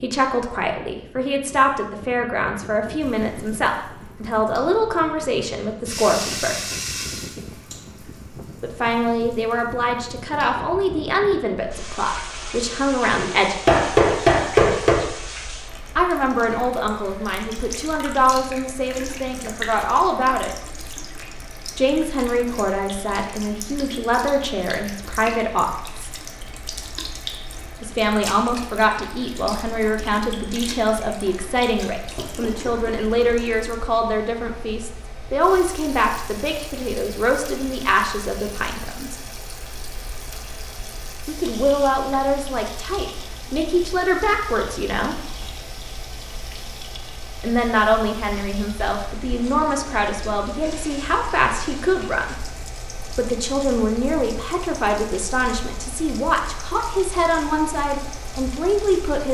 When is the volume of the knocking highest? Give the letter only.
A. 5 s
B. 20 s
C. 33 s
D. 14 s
D.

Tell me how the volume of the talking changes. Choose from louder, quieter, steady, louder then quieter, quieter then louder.
steady.